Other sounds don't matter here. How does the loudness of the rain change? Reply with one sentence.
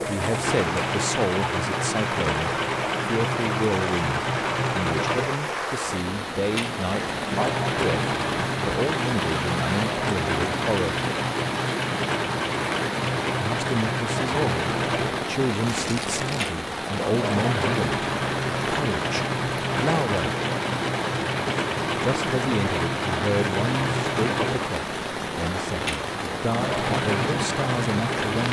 The volume of the rain stays about the same.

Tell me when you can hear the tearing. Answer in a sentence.
The tearing can be heard from 15.7 to 16.6 s.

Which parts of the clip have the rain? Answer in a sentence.
The rain can be heard from 0.0 to 28.4 s.